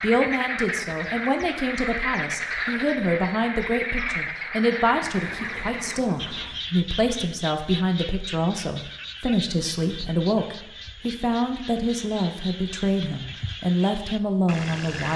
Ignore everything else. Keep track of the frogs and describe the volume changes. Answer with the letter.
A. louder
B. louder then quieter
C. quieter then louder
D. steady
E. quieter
E.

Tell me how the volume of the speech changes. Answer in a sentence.
The loudness of the speech stays about the same.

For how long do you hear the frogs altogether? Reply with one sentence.
You can hear the frogs for 15 seconds altogether.